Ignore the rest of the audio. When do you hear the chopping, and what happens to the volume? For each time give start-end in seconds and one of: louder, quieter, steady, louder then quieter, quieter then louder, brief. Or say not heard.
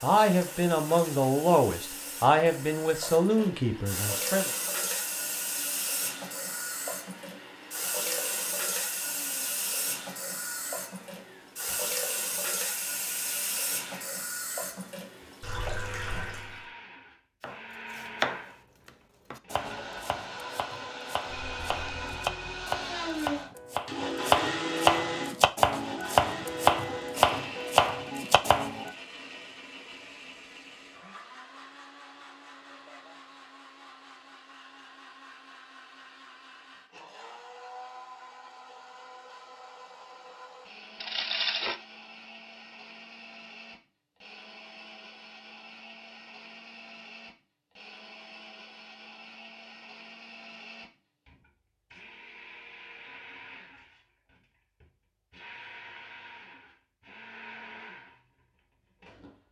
17.4-28.9 quieter then louder.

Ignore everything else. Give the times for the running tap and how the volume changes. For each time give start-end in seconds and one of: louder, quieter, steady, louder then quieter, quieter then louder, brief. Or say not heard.
0.0-16.6 louder.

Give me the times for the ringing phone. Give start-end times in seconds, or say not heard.
21.2-22.7, 41.0-41.8.